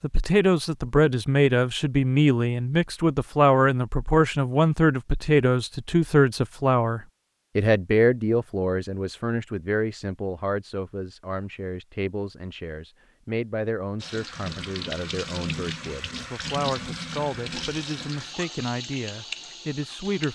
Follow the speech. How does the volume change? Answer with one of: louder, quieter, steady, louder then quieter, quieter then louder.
quieter.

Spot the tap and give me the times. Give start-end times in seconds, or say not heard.
14.0-20.2.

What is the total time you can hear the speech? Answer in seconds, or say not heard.
20 s.